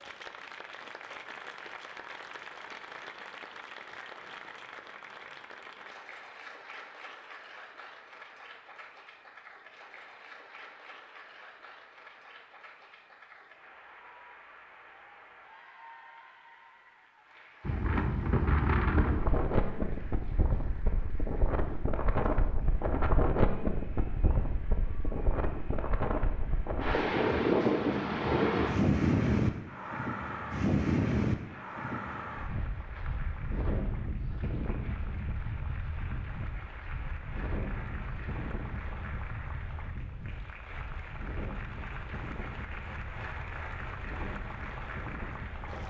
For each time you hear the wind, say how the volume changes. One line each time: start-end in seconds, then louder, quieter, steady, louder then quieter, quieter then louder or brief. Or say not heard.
17.6-45.8 quieter.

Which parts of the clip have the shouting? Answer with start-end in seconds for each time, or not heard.
not heard.